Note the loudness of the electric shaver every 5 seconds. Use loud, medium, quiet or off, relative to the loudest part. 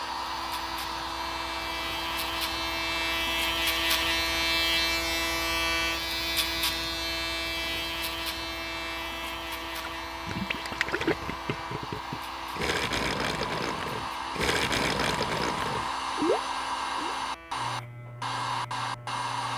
loud, loud, quiet, quiet.